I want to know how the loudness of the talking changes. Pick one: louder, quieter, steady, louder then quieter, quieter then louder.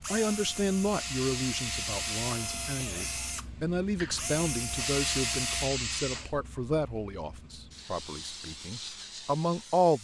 steady.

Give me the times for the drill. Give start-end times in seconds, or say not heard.
0.0-5.7.